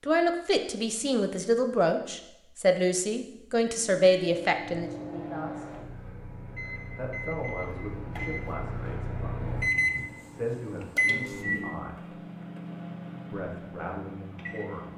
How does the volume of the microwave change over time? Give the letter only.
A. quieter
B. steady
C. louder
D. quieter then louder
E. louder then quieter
E.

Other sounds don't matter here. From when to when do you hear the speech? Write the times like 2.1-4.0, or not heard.
0.0-5.7, 7.0-12.2, 13.3-14.8.